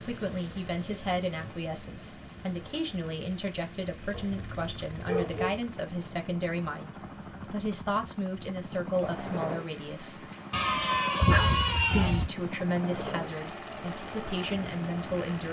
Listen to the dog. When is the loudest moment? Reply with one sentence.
The loudest moment of the dog is at 11 seconds.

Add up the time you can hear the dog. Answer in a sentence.
The dog can be heard for 3 seconds in total.